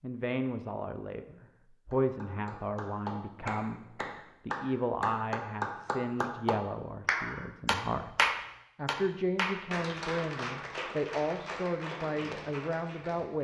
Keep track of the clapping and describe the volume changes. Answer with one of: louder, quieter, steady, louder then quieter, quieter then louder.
louder then quieter.